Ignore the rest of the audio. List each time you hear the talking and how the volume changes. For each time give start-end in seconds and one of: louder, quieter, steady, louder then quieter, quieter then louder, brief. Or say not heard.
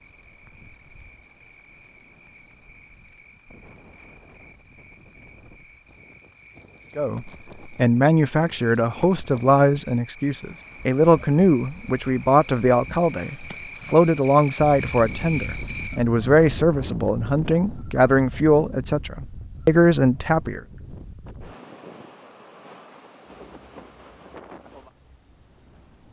7.0-20.6 steady.